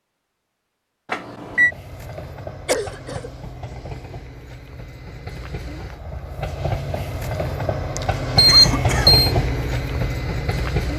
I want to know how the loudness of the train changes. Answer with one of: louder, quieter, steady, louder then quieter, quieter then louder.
louder.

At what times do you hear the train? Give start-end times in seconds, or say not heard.
1.4-10.9.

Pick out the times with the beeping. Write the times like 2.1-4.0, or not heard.
1.1-1.7, 8.3-9.3.